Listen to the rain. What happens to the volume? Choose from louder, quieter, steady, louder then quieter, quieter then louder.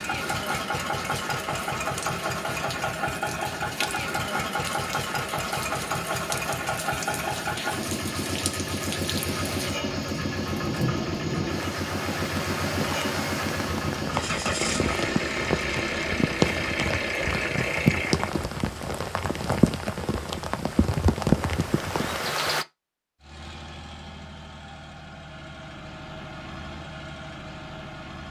louder.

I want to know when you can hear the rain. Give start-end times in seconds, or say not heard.
0.1-22.6.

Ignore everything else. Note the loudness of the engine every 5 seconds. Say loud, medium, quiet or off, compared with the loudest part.
loud, loud, loud, loud, quiet, medium.